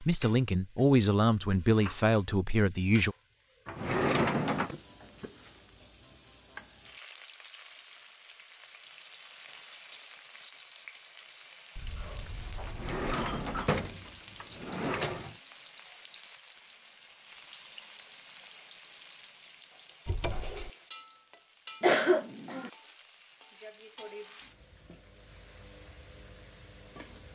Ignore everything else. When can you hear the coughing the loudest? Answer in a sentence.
The loudest moment of the coughing is at 22 seconds.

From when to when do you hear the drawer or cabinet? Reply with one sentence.
The drawer or cabinet can be heard from 3.6 to 4.8 s, from 12.7 to 15.3 s and from 20.1 to 20.7 s.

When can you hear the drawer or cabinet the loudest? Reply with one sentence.
The volume of the drawer or cabinet peaks at 4 seconds.